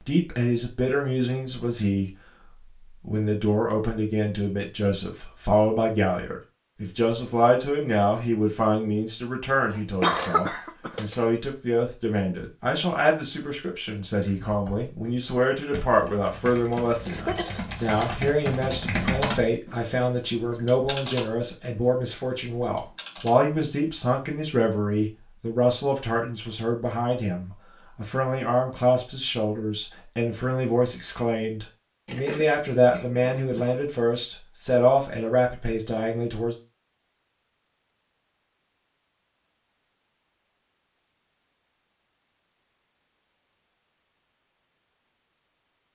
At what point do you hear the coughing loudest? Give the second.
10 s.